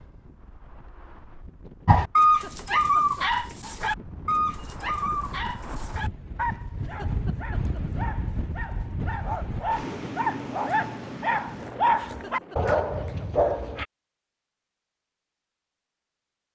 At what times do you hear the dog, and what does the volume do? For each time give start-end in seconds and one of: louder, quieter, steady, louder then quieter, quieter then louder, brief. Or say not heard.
1.9-13.8 quieter then louder.